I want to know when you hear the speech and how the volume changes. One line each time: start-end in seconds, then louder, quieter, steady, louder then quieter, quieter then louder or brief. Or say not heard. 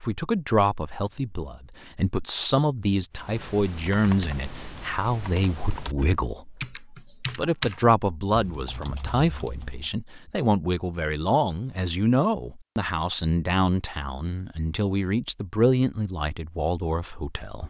0.0-17.6 steady.